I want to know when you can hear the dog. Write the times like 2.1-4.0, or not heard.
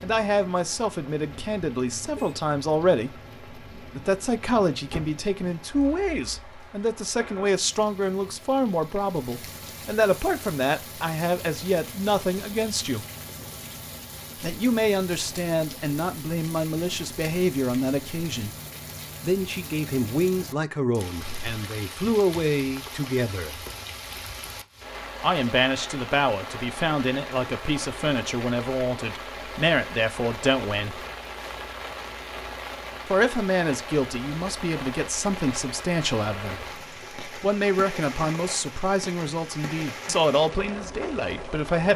not heard.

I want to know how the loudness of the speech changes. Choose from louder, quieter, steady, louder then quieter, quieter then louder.
steady.